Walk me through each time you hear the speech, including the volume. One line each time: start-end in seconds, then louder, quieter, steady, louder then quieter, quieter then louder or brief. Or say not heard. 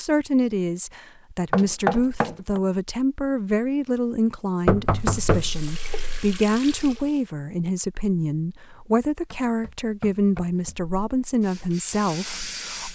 0.0-12.9 steady.